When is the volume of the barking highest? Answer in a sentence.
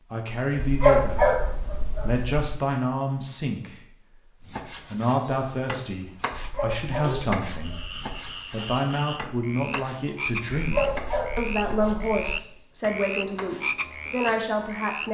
The loudest moment of the barking is at 1 second.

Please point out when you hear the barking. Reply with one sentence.
You can hear the barking from 0.6 to 2.6 s, from 6.3 to 8.2 s and from 10.6 to 12.4 s.